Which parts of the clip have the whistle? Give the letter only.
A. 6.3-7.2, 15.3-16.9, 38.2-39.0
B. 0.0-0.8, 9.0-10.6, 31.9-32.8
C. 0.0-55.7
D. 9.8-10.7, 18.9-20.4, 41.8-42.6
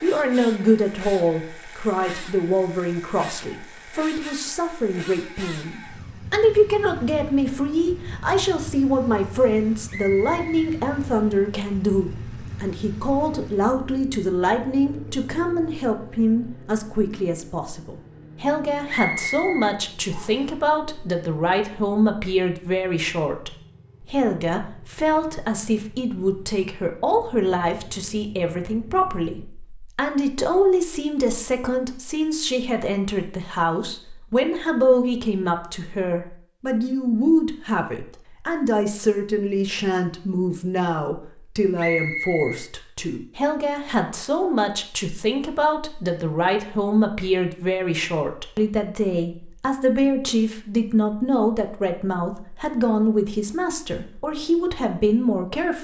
D.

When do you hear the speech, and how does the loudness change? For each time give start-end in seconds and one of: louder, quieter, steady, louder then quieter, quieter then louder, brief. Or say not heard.
0.0-55.7 steady.